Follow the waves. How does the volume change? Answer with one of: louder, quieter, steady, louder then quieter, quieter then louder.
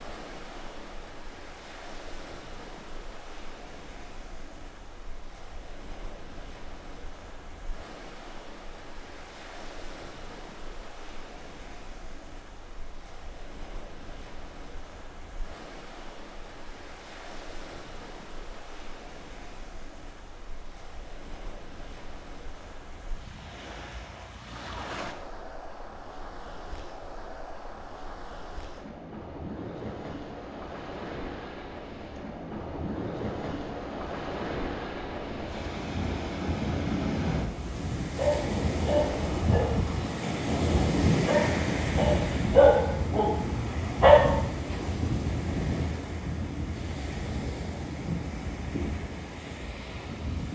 louder.